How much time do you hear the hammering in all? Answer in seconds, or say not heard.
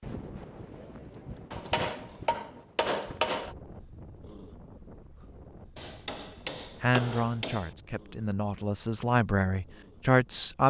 4 s.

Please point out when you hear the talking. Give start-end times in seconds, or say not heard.
6.8-10.6.